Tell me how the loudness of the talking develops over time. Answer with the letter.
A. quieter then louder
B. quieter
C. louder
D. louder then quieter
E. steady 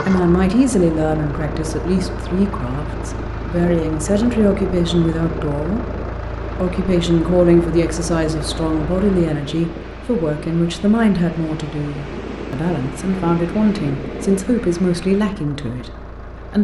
E.